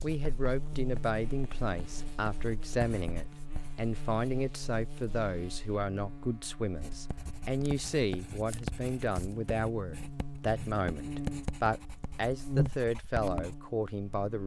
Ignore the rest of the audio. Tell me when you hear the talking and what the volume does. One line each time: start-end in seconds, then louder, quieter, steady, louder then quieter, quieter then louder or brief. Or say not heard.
0.0-14.4 steady.